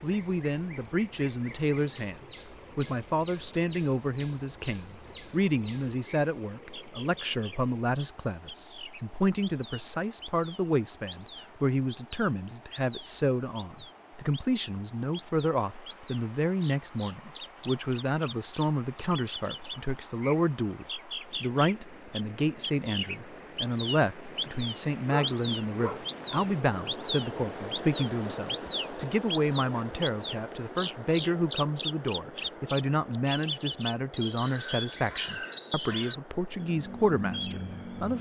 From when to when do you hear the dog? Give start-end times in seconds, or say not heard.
25.1-26.5.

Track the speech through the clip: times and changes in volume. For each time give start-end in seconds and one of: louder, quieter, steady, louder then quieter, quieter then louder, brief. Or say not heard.
0.0-38.1 steady.